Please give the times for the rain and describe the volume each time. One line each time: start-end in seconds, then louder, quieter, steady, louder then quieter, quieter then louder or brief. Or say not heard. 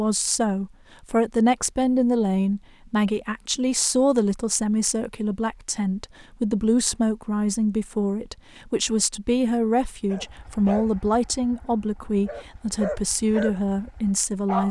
not heard.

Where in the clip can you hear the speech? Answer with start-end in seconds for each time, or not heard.
0.0-14.6.